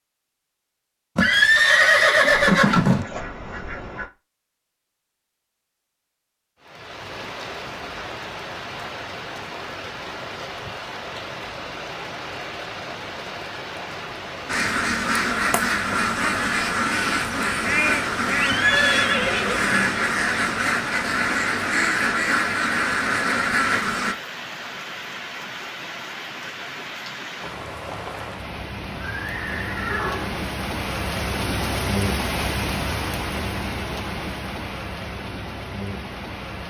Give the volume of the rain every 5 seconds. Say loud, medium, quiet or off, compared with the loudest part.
off, medium, medium, medium, medium, medium, loud, medium.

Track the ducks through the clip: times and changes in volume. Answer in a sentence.
You can hear the ducks briefly from 2.2 to 4.1 s; and from 14.4 to 24.1 s, at a steady volume.